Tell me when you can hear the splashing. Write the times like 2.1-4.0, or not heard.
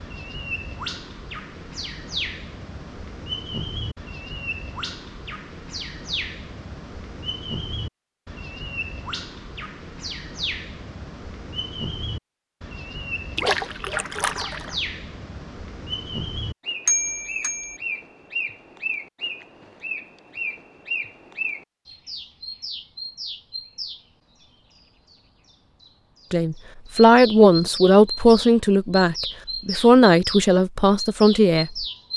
13.3-14.8.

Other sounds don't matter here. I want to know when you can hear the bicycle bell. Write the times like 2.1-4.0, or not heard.
16.9-17.8.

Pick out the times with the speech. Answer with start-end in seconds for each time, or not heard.
26.3-31.9.